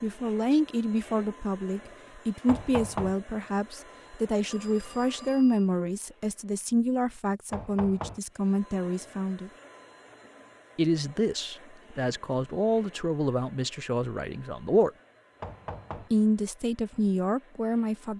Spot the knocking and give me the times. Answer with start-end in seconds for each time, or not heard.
2.5-3.1, 7.5-8.2, 15.4-16.1.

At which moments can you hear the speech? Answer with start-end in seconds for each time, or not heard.
0.0-9.5, 10.8-14.9, 16.1-18.1.